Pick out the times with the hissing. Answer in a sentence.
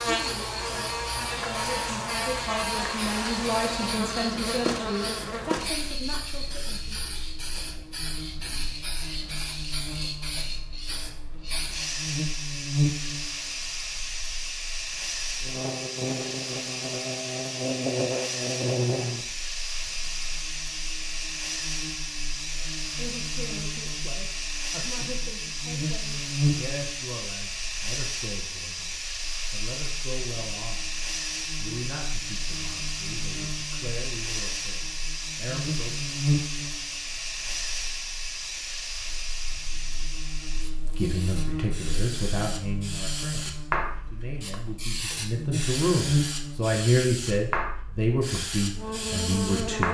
The hissing can be heard from 0.0 to 49.8 s.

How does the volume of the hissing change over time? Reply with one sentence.
The loudness of the hissing stays about the same.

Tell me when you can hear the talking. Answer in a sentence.
You can hear the talking from 0.1 to 7.2 s, from 22.6 to 36.2 s and from 41.0 to 49.8 s.